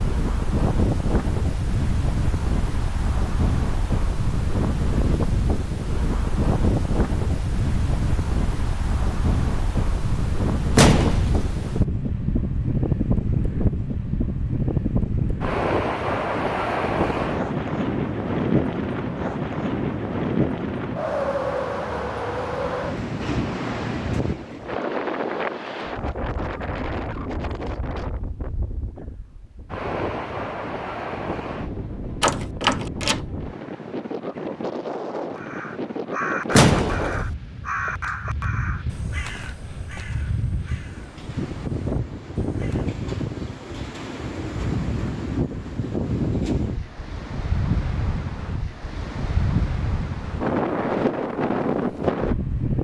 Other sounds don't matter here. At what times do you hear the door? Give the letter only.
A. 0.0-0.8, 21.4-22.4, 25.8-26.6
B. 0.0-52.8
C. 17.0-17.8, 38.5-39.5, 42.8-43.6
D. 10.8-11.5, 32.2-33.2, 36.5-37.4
D.